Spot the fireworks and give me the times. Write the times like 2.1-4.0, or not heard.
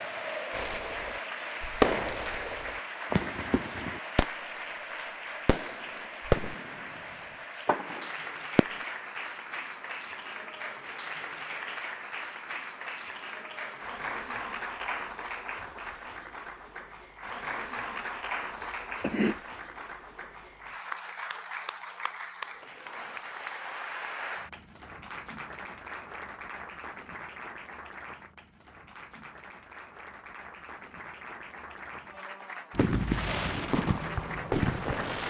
0.5-4.3, 5.5-6.8, 7.7-8.7, 32.8-35.2.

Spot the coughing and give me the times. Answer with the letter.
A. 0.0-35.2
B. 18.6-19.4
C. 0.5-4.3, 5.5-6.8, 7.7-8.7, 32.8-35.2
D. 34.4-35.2
B.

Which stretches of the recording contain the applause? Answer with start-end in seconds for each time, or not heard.
0.0-35.2.